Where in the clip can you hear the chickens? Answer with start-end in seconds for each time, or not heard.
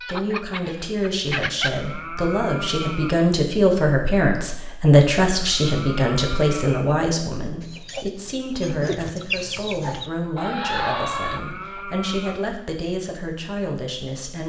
0.0-1.7, 7.6-11.8.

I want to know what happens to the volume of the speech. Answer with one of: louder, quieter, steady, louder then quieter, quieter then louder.
louder then quieter.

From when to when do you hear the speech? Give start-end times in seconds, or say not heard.
0.0-14.4.